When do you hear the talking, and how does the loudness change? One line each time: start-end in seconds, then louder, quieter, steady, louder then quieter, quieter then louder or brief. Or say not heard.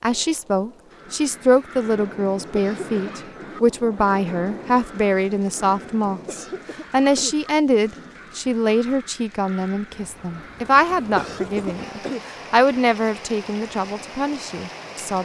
0.0-15.1 steady.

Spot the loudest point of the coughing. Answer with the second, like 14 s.
11 s.